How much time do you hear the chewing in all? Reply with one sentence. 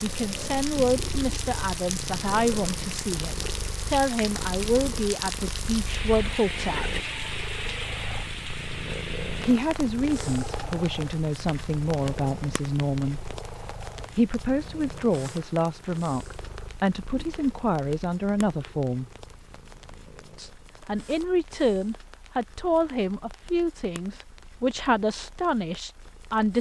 You can't hear the chewing here.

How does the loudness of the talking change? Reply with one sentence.
The loudness of the talking stays about the same.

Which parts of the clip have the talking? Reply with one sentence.
You can hear the talking from 0.0 to 7.0 s, from 9.4 to 13.3 s, from 14.2 to 19.1 s and from 20.4 to 26.5 s.